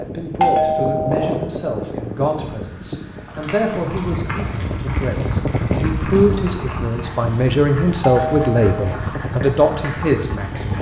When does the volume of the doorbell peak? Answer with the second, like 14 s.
1 s.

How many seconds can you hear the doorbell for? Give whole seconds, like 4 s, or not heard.
2 s.